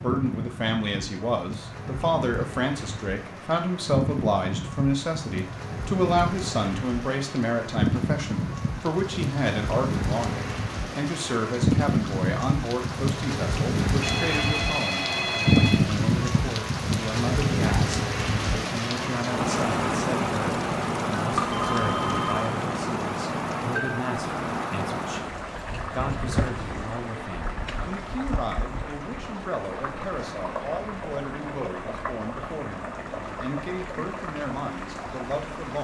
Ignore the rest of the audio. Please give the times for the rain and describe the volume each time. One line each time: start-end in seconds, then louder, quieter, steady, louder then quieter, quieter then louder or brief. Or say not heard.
0.0-35.7 louder then quieter.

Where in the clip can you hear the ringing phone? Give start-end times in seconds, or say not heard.
14.0-15.8, 21.3-22.5.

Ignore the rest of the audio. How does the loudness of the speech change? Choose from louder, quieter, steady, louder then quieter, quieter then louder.
quieter.